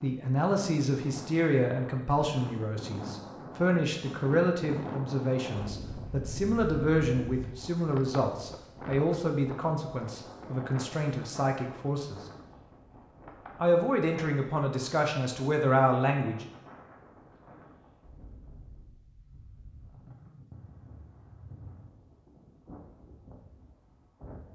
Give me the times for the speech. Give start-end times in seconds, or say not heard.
0.0-12.2, 13.6-16.4.